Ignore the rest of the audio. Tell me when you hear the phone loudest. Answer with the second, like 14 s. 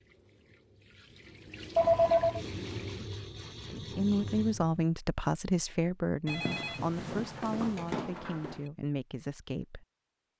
2 s.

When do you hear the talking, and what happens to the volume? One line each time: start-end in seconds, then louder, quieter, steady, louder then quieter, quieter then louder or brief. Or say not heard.
3.6-9.8 quieter.